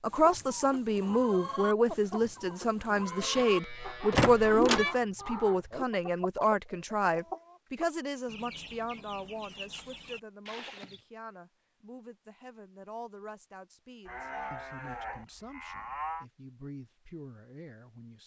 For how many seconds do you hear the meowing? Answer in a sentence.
You can hear the meowing for 2 seconds altogether.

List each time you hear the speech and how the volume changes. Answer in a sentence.
You can hear the speech from 0.0 to 18.2 s, getting quieter.